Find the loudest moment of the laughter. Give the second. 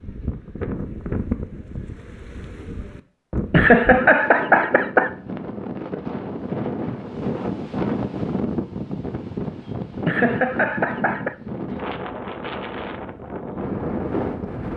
4 s.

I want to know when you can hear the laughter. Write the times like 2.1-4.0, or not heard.
3.5-5.1, 10.1-11.3.